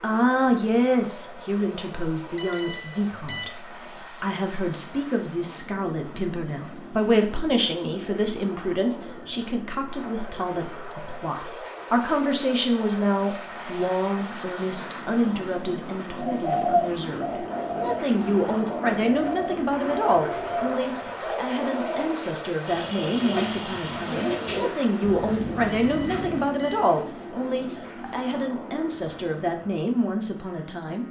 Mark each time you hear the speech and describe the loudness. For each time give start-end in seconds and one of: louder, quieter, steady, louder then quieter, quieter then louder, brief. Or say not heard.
0.0-31.0 steady.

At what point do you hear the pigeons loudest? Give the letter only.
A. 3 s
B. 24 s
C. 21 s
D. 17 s
D.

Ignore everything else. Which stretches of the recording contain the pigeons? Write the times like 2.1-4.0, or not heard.
16.1-26.4.